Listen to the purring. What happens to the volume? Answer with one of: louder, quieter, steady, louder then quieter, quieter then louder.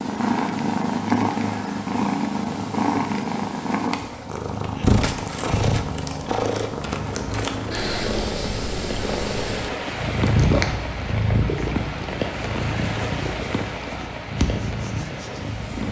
quieter.